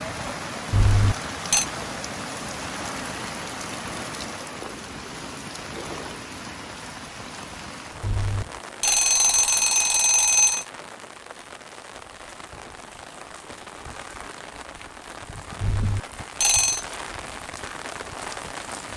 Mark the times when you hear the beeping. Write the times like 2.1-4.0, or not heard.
0.7-1.6, 8.0-10.7, 15.6-16.9.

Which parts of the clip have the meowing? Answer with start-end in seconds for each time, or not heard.
not heard.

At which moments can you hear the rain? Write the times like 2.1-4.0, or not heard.
0.0-18.9.